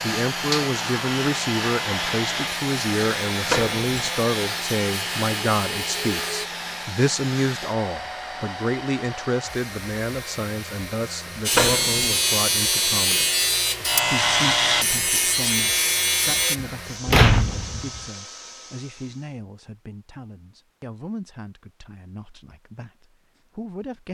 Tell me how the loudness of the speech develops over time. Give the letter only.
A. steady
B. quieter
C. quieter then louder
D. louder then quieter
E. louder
B.